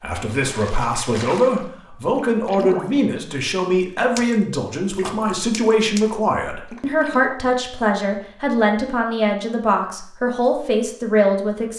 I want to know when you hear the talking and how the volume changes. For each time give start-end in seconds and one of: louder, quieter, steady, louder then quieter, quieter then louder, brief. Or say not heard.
0.0-11.7 steady.